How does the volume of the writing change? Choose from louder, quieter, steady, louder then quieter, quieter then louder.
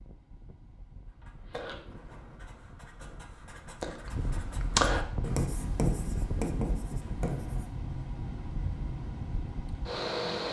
louder then quieter.